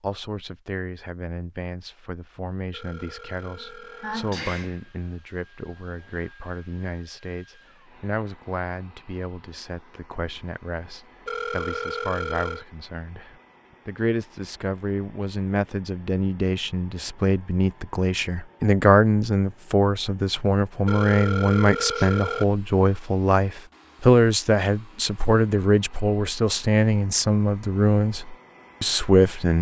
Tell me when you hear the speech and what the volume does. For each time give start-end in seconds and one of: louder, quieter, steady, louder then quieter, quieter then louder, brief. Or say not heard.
0.0-29.5 louder.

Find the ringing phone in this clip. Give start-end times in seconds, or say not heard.
2.7-4.3, 11.2-12.7, 20.9-22.4.